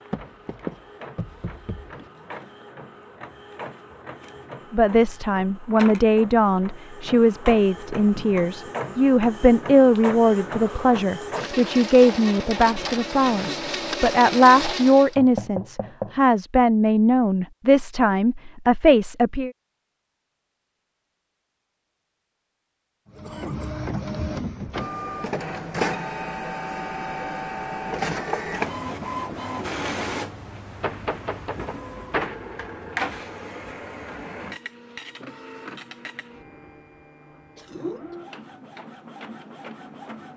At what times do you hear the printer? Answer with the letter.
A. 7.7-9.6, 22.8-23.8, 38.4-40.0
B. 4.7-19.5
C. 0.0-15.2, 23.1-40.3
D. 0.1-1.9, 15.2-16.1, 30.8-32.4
C.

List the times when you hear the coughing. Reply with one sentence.
The coughing can be heard from 1.9 to 2.4 s, from 23.1 to 23.8 s and from 37.5 to 38.2 s.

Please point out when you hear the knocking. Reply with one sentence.
The knocking can be heard from 0.1 to 1.9 s, from 15.2 to 16.1 s and from 30.8 to 32.4 s.